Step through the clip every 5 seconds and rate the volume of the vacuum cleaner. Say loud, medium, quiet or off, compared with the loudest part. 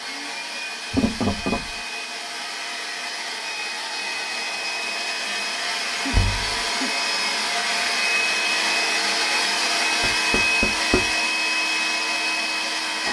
medium, loud, loud.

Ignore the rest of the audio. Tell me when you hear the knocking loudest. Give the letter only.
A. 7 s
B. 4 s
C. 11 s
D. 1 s
D.